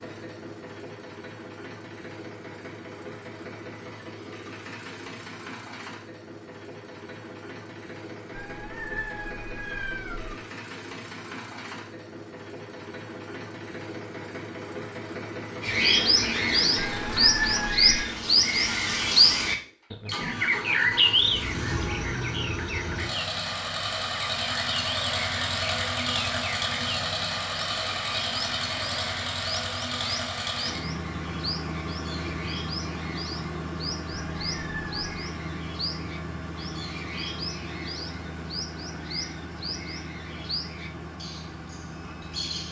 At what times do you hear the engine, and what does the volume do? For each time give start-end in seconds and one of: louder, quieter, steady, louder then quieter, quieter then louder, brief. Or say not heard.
0.0-42.6 louder then quieter.